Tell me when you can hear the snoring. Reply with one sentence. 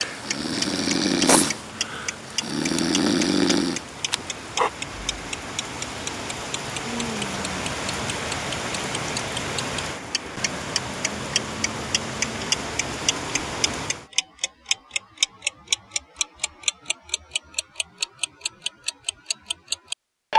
The snoring can be heard from 0.0 to 4.7 s.